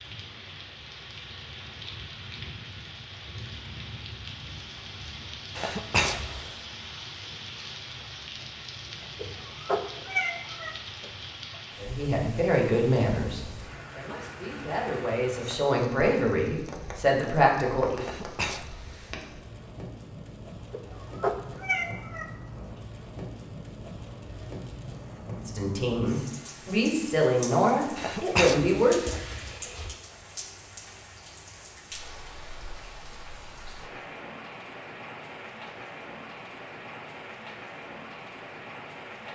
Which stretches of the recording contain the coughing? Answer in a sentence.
You can hear the coughing from 5.5 to 6.5 s, from 18.0 to 19.1 s and from 27.9 to 29.9 s.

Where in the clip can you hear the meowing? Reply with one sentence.
You can hear the meowing from 9.2 to 11.1 s and from 20.7 to 22.6 s.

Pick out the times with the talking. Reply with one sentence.
The talking can be heard from 11.8 to 18.1 s and from 25.4 to 29.1 s.